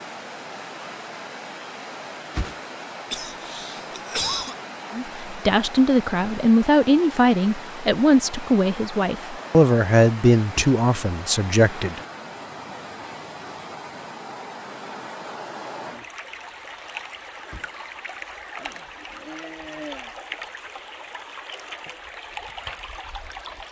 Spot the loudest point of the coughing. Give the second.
4 s.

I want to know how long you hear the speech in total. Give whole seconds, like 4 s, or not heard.
7 s.